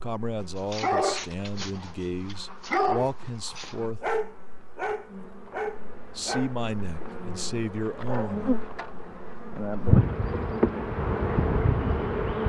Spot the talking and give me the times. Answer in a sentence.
The talking can be heard from 0.0 to 4.1 s and from 6.2 to 8.5 s.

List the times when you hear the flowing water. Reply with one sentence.
You can't hear the flowing water here.